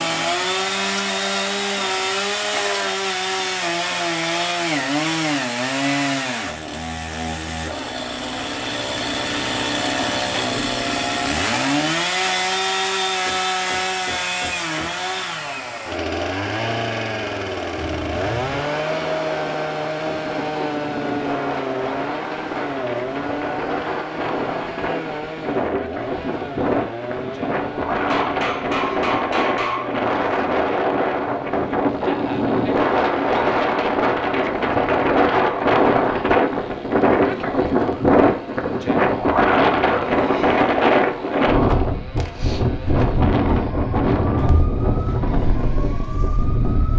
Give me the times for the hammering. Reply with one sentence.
The hammering can be heard from 13.2 to 14.9 s and from 27.9 to 29.9 s.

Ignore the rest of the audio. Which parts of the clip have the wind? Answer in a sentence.
The wind can be heard from 17.8 to 46.9 s.